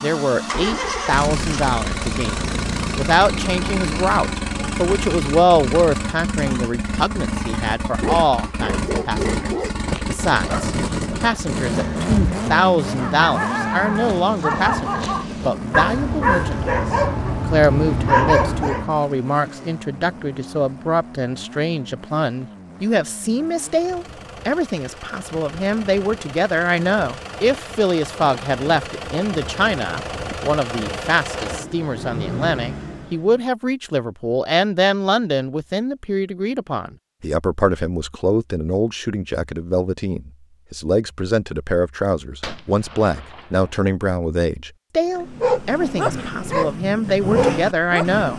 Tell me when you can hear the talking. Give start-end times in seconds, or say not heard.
0.0-16.8, 17.4-48.3.